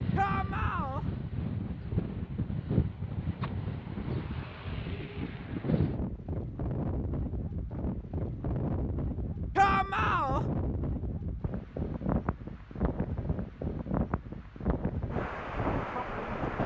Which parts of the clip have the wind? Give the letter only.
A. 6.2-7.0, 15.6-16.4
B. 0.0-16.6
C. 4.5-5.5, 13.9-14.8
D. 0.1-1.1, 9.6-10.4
B.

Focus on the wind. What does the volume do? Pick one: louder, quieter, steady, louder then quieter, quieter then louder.
steady.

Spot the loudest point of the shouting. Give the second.
10 s.